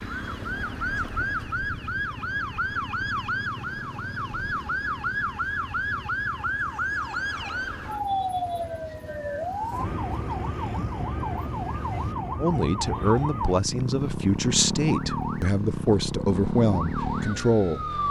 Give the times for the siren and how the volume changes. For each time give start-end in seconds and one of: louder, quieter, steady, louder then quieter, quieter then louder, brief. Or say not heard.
0.0-18.0 steady.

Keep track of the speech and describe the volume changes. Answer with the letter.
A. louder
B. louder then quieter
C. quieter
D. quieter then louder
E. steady
E.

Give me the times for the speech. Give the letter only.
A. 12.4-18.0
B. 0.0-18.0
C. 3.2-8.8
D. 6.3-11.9
A.